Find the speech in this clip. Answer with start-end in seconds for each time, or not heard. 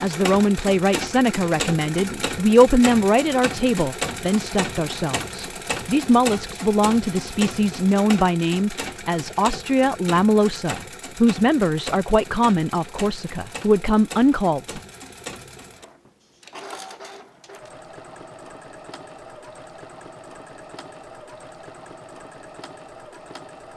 0.0-14.8.